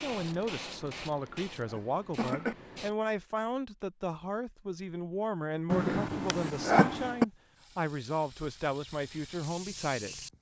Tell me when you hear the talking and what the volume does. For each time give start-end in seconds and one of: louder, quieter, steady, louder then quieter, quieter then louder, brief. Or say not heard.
0.0-10.2 steady.